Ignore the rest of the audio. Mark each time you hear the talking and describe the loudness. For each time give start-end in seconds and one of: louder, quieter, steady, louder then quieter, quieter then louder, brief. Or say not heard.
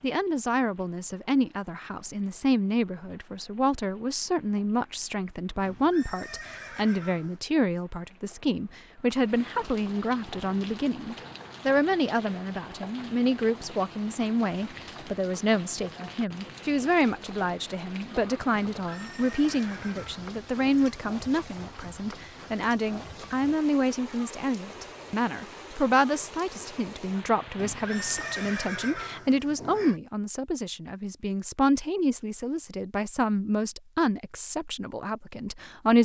0.0-35.9 steady.